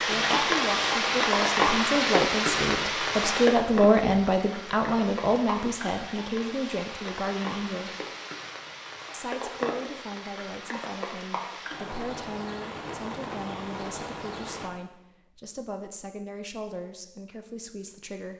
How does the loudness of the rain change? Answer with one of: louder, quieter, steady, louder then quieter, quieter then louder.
quieter.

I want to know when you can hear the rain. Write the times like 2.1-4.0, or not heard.
0.0-14.7.